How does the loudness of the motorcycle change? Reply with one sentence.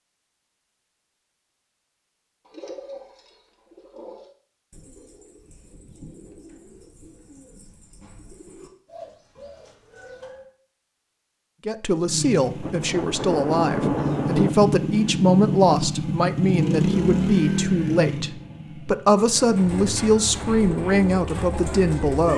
The loudness of the motorcycle goes up, then down.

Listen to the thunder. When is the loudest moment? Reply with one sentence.
The loudest moment of the thunder is at 14 seconds.